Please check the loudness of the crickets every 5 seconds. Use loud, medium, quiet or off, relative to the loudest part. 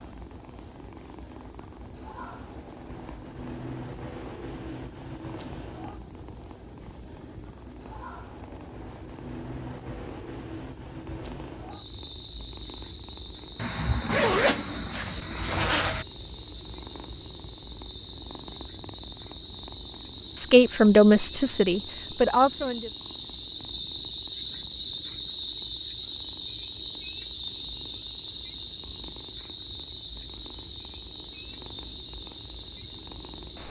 medium, medium, medium, medium, loud, loud, medium.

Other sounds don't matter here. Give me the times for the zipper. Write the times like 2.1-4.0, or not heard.
13.6-16.1.